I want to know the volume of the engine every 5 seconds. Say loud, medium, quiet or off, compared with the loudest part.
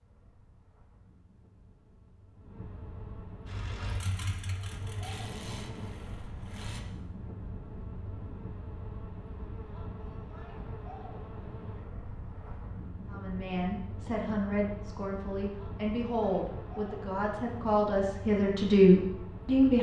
loud, loud, off, off.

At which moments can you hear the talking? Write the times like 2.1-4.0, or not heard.
13.1-19.7.